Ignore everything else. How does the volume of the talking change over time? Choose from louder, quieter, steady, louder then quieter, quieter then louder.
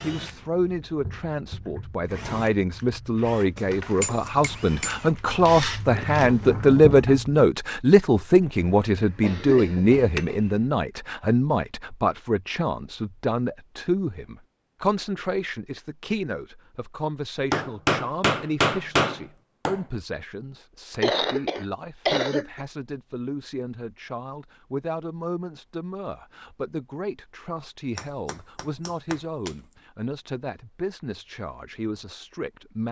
quieter.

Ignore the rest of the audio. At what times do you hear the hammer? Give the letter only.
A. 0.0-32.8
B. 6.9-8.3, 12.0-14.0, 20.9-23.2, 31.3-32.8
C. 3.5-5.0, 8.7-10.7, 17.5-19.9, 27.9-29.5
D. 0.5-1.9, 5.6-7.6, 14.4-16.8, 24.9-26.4
C.